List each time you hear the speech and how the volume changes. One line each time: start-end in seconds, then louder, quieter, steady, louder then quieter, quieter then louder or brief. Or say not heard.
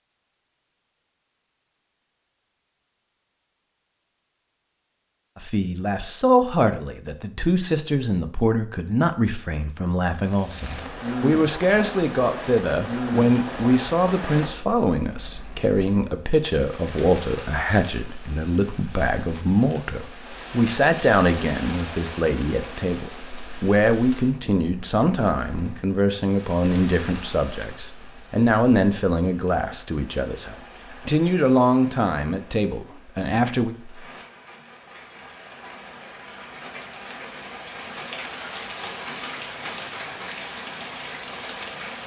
5.3-33.8 steady.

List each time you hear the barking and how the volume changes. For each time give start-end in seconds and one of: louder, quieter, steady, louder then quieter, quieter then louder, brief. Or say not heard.
not heard.